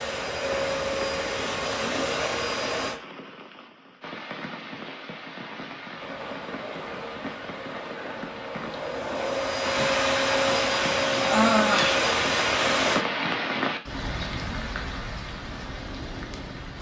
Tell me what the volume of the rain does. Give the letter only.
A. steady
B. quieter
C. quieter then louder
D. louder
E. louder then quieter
D.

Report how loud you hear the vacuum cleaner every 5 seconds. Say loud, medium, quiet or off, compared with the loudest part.
medium, medium, loud, off.